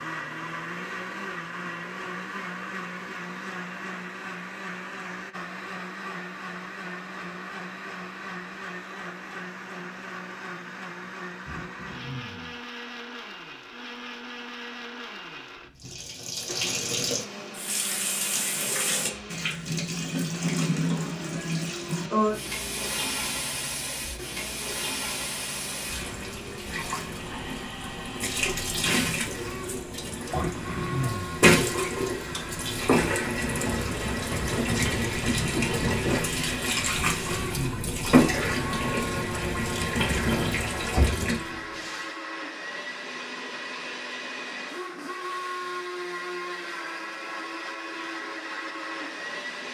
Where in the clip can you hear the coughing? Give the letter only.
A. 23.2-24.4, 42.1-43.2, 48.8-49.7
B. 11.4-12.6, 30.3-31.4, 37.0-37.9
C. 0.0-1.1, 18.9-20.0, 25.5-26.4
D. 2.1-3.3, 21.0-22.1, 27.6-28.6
B.